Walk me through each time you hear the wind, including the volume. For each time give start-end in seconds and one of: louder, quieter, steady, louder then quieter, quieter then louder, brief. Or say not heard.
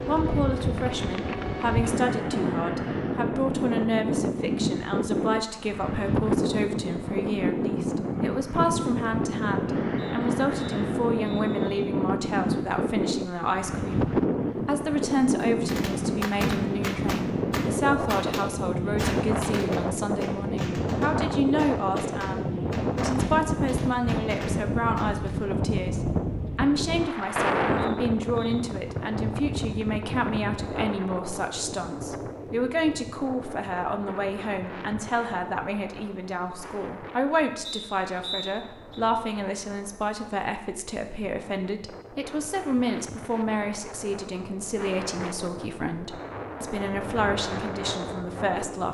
0.0-48.9 quieter.